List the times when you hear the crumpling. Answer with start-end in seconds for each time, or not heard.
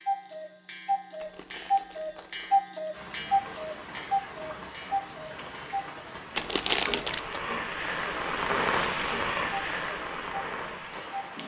1.1-2.6, 6.3-7.4.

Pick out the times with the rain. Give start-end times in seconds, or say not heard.
2.9-11.4.